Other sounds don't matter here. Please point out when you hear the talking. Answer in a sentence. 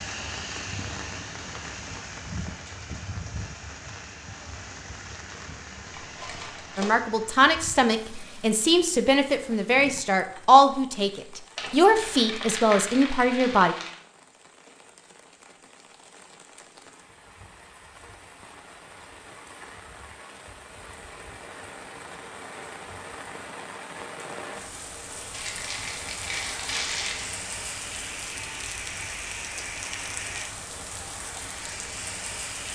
The talking can be heard from 6.8 to 13.8 s.